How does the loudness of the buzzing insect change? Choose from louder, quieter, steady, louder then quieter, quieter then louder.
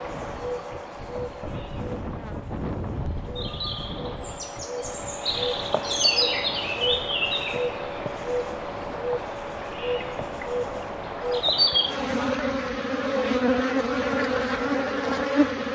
louder.